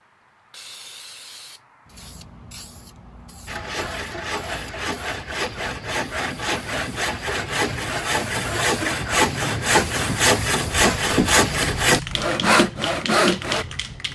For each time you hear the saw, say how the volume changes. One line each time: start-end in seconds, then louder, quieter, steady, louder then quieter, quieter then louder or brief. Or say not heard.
3.5-13.7 louder.